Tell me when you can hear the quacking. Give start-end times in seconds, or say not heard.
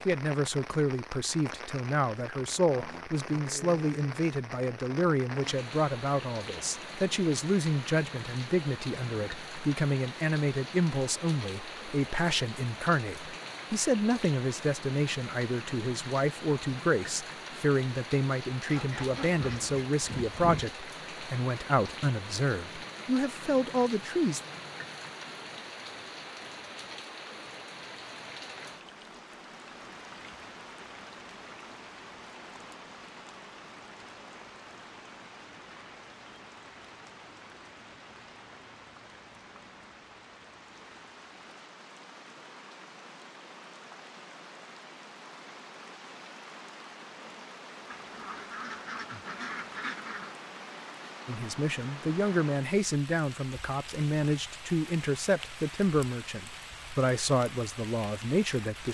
18.6-20.7, 47.9-50.4.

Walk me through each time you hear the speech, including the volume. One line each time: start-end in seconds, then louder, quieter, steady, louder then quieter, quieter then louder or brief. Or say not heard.
0.1-24.4 steady
51.2-58.8 steady.